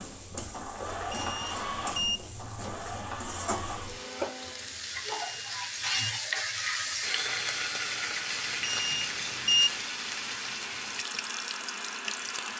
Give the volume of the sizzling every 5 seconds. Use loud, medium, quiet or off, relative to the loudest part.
medium, loud, medium.